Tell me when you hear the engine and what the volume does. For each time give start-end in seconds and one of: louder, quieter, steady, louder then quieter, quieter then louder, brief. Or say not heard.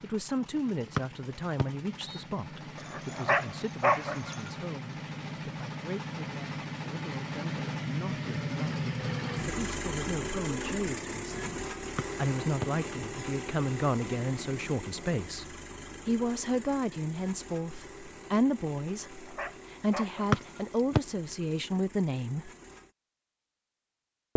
0.0-22.9 louder then quieter.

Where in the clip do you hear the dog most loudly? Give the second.
4 s.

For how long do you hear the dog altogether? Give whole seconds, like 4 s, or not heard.
4 s.